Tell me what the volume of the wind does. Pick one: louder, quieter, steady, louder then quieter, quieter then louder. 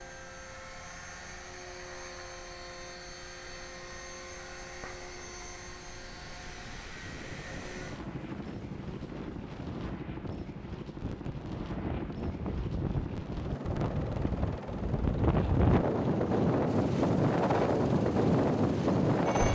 louder.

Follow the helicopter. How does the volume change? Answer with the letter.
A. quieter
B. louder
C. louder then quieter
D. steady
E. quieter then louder
B.